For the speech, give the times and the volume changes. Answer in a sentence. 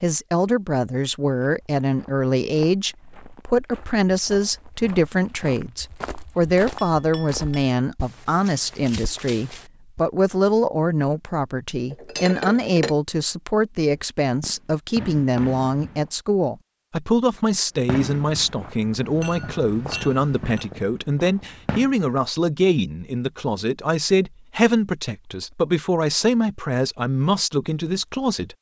The speech can be heard from 0.0 to 28.5 s, at a steady volume.